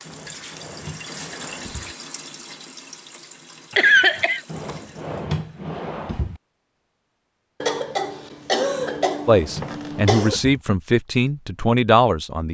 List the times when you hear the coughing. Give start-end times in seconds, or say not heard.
3.8-4.4, 7.6-10.3.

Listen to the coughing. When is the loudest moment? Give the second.
4 s.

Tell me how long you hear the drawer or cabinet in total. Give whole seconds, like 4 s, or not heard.
6 s.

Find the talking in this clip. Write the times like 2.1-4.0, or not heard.
9.2-12.5.